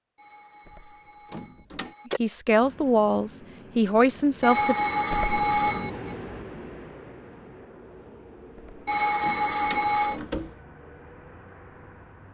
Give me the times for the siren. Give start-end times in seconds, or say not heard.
not heard.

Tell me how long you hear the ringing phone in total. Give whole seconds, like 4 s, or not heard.
5 s.